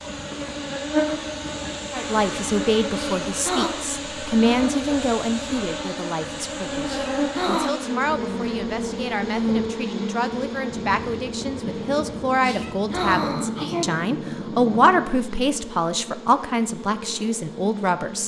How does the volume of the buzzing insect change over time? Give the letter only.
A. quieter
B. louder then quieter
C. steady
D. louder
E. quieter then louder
A.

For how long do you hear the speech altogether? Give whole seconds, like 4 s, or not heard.
16 s.